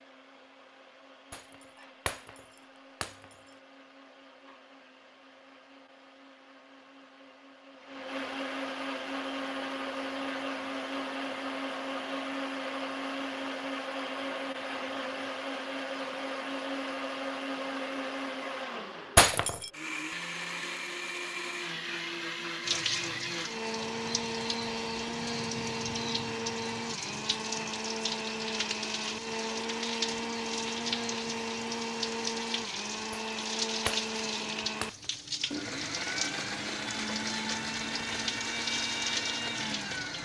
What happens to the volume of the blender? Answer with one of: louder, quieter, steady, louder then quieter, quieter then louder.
louder.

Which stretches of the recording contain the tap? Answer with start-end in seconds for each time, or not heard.
22.6-40.2.